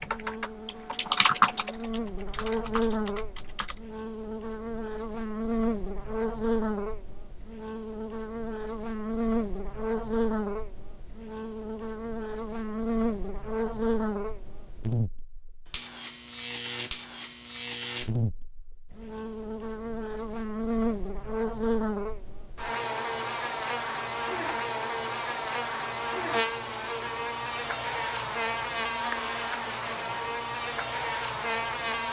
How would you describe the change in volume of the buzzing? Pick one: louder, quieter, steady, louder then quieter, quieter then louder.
steady.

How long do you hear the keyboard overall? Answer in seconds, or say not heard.
4 s.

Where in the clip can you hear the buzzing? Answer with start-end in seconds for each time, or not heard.
0.0-32.0.